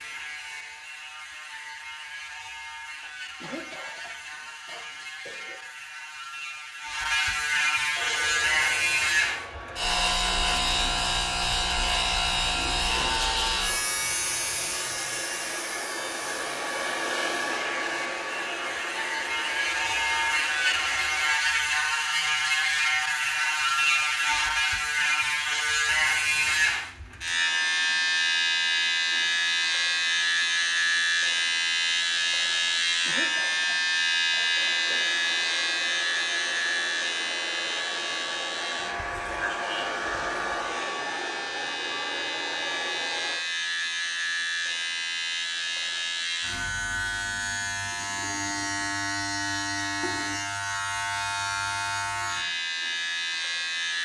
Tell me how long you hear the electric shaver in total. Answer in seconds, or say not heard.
54 s.